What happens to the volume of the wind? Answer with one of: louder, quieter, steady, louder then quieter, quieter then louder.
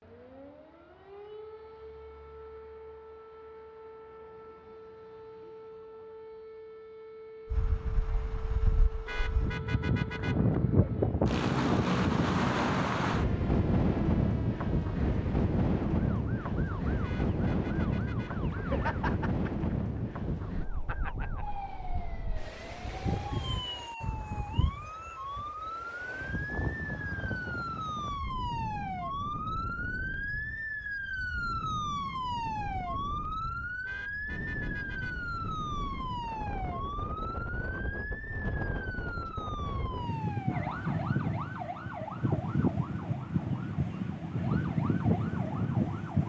quieter then louder.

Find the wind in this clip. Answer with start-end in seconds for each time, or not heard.
7.5-46.2.